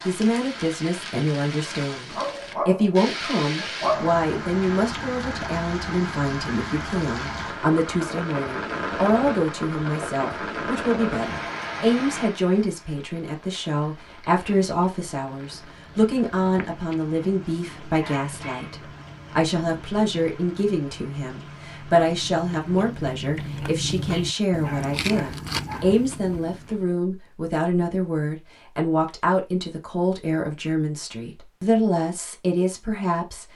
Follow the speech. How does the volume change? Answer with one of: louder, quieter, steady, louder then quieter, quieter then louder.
steady.